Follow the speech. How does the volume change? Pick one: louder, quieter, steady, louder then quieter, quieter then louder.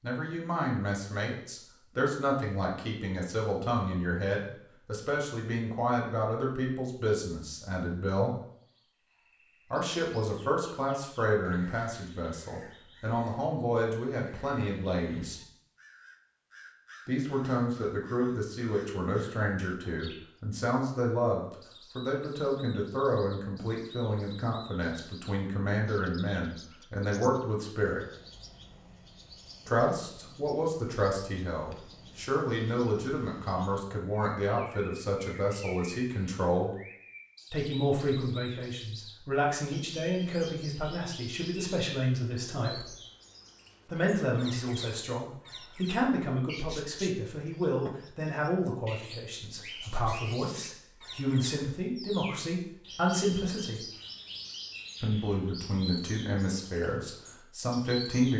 steady.